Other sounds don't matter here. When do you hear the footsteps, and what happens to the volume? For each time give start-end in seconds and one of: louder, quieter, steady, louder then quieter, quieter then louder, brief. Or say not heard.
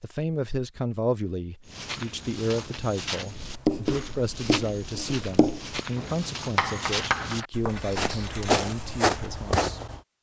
1.6-10.0 louder.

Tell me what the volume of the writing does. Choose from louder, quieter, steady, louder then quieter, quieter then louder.
quieter.